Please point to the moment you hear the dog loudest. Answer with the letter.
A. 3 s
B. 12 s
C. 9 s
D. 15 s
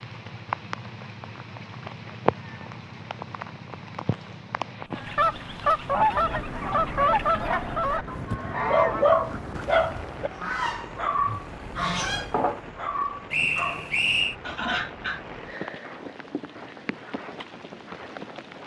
C.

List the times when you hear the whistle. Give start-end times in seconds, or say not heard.
13.3-14.3.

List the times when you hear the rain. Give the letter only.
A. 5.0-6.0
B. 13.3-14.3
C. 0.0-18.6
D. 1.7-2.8
C.